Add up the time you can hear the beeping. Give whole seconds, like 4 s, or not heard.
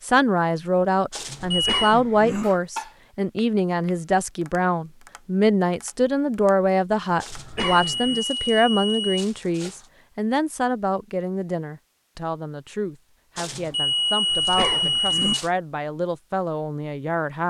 5 s.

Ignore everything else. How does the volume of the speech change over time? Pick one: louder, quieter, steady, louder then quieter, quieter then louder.
quieter.